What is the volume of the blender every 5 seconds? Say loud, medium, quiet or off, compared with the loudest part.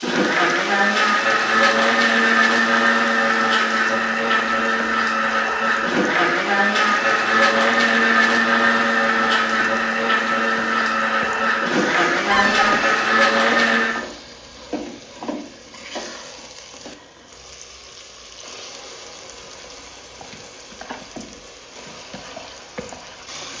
loud, loud, loud, off, off.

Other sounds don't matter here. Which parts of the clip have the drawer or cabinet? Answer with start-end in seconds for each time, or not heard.
12.3-12.8.